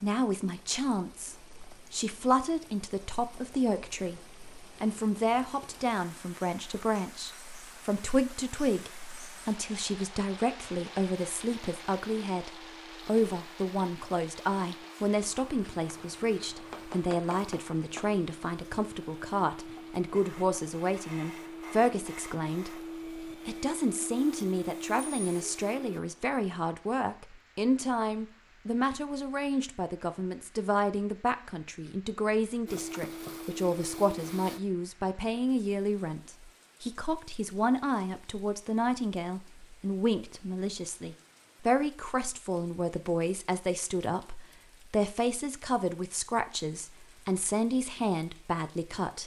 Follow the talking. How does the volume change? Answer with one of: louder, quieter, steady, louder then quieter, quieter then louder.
steady.